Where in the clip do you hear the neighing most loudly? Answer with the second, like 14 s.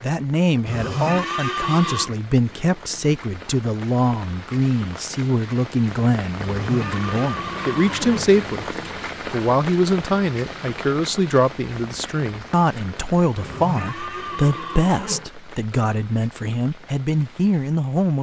1 s.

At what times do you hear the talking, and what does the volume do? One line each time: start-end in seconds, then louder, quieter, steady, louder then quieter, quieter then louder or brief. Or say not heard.
0.0-18.1 steady.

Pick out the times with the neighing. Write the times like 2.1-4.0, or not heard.
0.7-2.1, 6.4-8.3, 13.3-15.3.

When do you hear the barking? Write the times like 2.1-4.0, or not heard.
not heard.